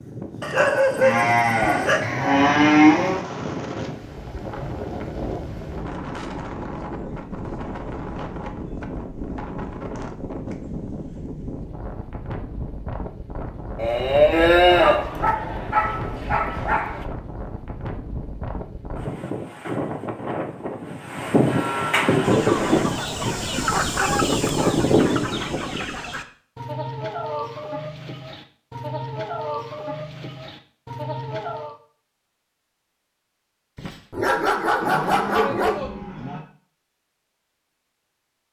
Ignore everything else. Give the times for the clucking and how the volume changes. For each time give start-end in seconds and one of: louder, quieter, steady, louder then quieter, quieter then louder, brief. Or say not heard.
22.1-31.8 quieter.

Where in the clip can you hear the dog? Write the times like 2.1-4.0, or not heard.
0.4-2.0, 14.7-17.1, 33.8-35.8.